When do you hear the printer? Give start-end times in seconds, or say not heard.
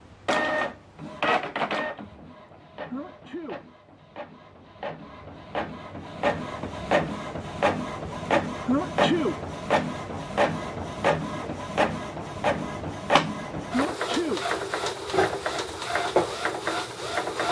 0.2-17.4.